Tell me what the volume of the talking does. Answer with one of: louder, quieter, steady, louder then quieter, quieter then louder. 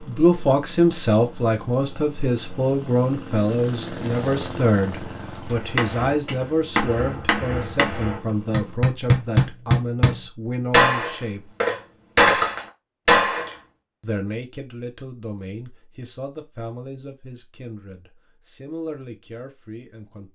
quieter.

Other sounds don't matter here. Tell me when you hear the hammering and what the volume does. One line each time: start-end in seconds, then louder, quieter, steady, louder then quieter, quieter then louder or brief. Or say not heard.
5.5-13.6 louder.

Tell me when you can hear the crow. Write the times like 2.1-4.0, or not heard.
not heard.